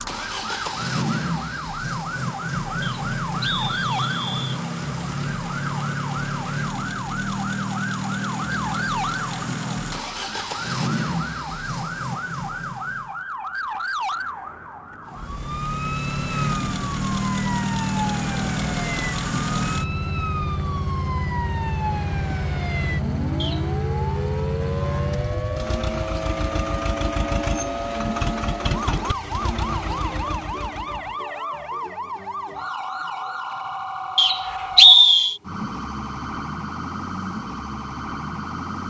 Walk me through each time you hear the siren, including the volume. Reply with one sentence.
The siren can be heard from 0.0 to 38.8 s, at a steady volume.